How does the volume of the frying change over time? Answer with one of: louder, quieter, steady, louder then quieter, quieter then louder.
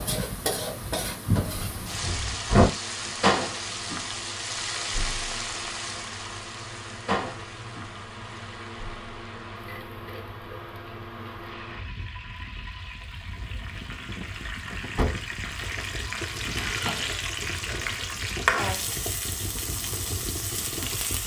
quieter then louder.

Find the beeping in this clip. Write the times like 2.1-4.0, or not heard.
not heard.